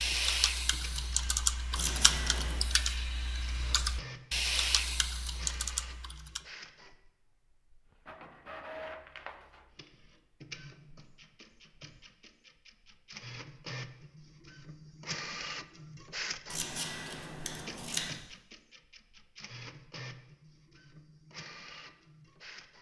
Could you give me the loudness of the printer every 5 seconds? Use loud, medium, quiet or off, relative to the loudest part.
medium, medium, medium, loud, medium.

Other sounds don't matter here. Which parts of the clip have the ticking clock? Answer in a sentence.
The ticking clock can't be heard in this clip.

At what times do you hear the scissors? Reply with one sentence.
The scissors can be heard from 1.8 to 2.6 s and from 16.5 to 18.1 s.